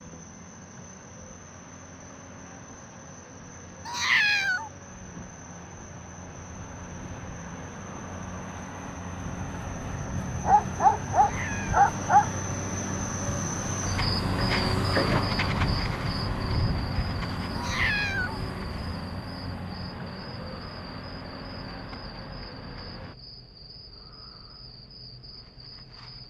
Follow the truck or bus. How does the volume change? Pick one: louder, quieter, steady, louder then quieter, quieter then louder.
louder then quieter.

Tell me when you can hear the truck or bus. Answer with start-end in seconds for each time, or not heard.
0.0-23.1.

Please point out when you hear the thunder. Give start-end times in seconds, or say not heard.
not heard.